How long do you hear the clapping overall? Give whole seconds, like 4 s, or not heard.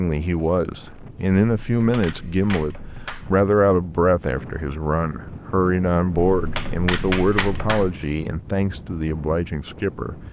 3 s.